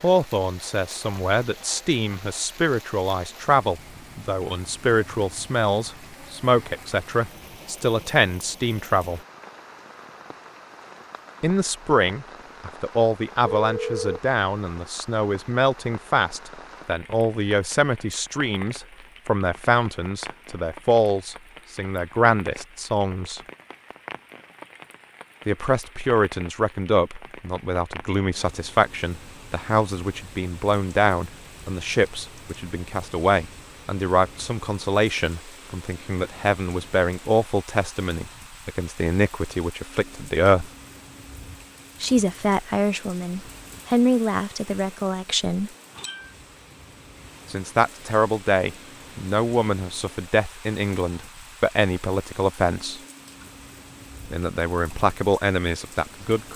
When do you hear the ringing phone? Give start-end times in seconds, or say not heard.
13.4-14.2.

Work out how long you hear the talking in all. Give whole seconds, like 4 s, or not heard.
48 s.